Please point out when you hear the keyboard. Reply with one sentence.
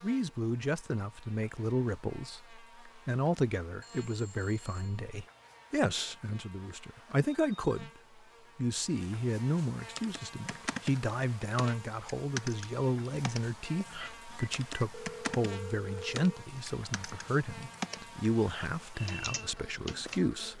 You can hear the keyboard from 9.9 to 20.2 s.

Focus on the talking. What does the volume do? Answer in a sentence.
The volume of the talking stays about the same.